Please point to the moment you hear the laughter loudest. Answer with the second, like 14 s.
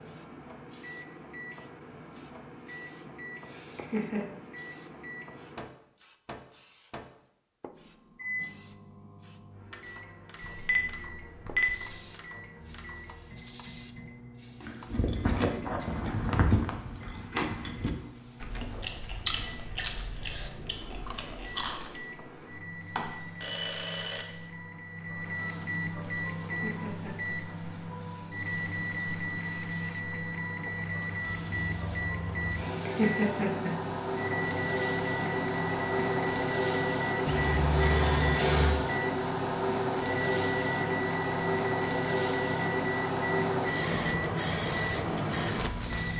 33 s.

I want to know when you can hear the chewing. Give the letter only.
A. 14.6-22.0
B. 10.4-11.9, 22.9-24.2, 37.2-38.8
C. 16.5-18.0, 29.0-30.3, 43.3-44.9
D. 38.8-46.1
A.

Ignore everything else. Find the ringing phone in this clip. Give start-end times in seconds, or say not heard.
10.4-11.9, 22.9-24.2, 37.2-38.8.